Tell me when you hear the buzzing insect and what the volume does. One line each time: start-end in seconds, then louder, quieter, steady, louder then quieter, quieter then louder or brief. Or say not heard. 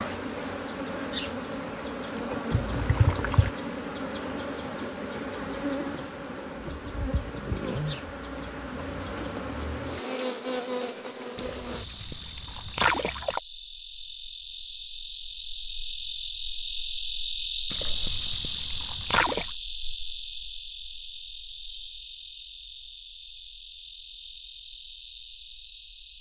0.0-26.1 louder then quieter.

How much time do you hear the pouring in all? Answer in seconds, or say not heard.
5 s.